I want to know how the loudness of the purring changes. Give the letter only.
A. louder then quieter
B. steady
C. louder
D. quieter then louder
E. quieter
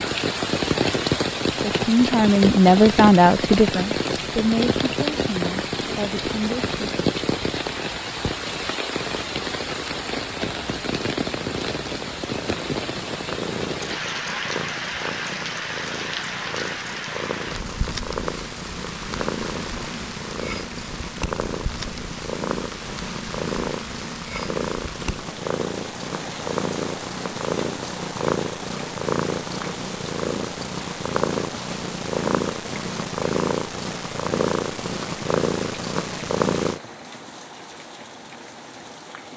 C.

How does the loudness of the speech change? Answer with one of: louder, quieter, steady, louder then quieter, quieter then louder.
quieter.